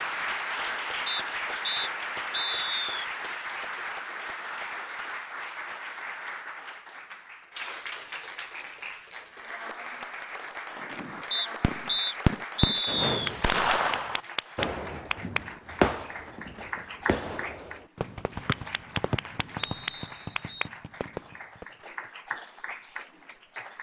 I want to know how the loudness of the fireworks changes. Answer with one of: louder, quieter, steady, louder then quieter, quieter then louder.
quieter.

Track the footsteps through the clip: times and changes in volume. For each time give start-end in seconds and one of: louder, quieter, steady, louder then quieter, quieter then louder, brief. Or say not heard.
not heard.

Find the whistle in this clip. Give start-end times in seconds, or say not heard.
1.1-3.0, 11.3-13.3, 18.4-20.6.